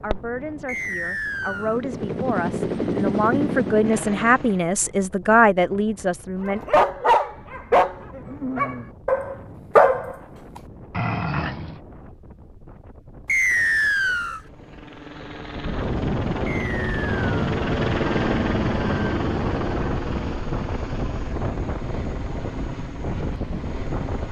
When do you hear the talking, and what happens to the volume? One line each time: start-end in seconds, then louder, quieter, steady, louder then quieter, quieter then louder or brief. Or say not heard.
0.0-6.6 louder.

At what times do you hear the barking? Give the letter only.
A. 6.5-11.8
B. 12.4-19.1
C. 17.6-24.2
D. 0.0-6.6
A.